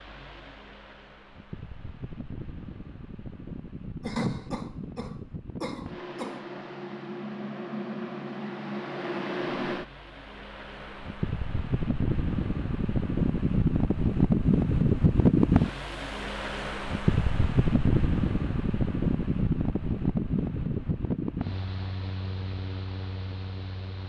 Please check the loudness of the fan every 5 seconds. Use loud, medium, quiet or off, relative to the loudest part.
quiet, medium, loud, loud, medium.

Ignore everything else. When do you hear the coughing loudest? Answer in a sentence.
The loudest moment of the coughing is at 4 seconds.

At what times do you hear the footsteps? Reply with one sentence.
You can't hear the footsteps here.